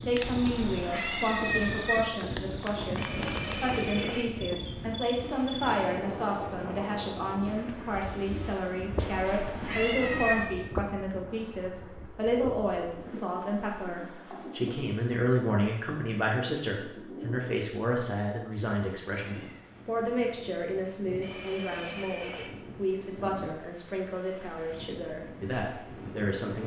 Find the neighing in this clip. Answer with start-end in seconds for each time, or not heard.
3.0-4.2, 21.2-22.5.